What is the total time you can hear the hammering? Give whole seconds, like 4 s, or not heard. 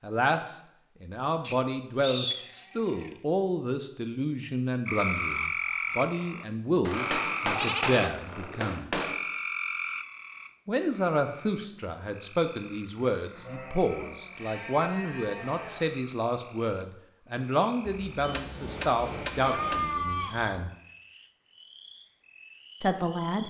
4 s.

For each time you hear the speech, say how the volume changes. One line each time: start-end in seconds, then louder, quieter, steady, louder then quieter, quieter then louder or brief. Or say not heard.
0.0-8.9 steady
10.7-20.7 steady
22.8-23.4 brief.